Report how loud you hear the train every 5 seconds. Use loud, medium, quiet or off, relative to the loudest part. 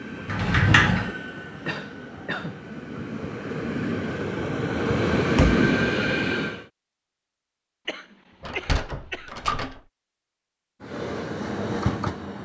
medium, loud, medium.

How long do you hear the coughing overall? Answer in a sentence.
You can hear the coughing for 3 seconds altogether.